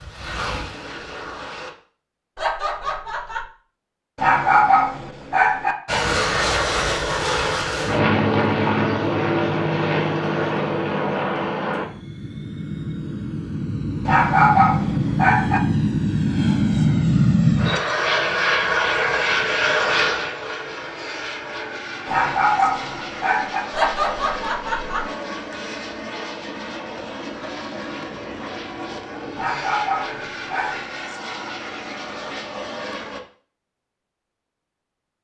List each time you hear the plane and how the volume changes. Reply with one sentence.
You can hear the plane briefly from 0.0 to 1.8 s; and from 5.8 to 33.2 s, getting quieter.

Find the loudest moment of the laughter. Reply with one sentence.
The loudest moment of the laughter is at 24 seconds.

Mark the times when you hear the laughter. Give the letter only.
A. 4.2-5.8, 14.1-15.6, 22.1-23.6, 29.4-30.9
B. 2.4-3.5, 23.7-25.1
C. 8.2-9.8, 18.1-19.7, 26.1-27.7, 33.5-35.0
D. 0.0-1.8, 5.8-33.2
B.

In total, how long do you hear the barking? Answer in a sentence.
You can hear the barking for 6 seconds altogether.